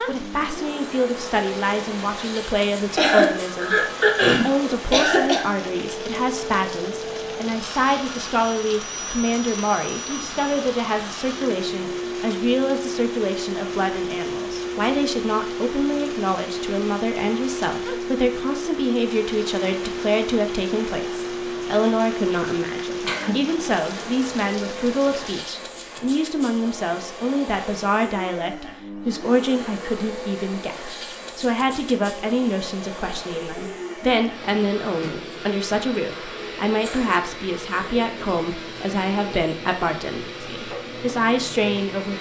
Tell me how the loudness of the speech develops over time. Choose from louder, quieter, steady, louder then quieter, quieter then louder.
steady.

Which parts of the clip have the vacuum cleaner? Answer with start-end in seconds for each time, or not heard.
0.1-42.1.